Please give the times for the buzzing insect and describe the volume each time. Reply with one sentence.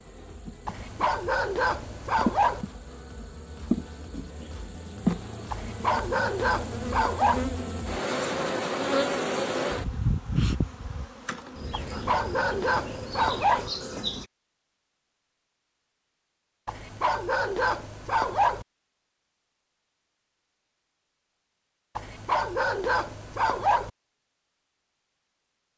You can hear the buzzing insect from 0.0 to 14.3 s, getting louder then quieter.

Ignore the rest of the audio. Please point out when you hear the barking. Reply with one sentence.
You can hear the barking from 0.7 to 2.6 s, from 5.5 to 7.5 s, from 11.7 to 13.7 s, from 16.6 to 18.6 s and from 21.9 to 23.9 s.